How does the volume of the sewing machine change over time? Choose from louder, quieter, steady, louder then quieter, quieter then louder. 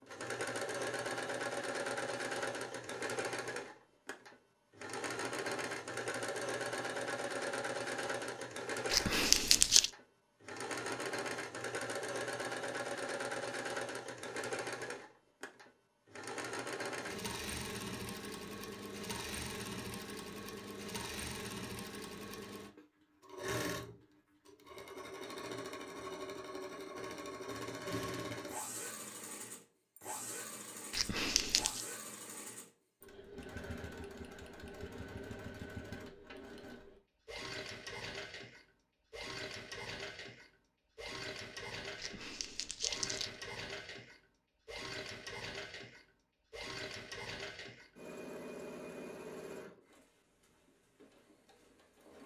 quieter.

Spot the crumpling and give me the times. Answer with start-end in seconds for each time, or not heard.
8.9-9.9, 30.9-31.9, 42.0-43.4.